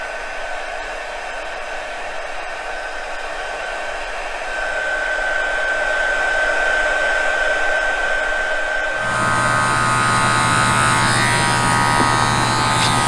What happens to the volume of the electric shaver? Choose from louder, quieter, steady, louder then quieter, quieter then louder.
steady.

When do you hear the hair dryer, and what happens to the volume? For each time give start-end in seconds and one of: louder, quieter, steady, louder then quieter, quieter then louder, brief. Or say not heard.
0.0-12.8 louder then quieter.